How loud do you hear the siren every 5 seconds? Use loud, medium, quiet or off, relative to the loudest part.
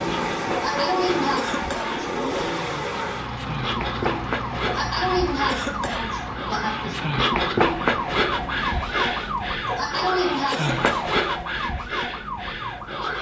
medium, loud, loud.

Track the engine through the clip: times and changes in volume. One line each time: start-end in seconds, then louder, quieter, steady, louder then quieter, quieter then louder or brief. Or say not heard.
0.0-11.2 quieter.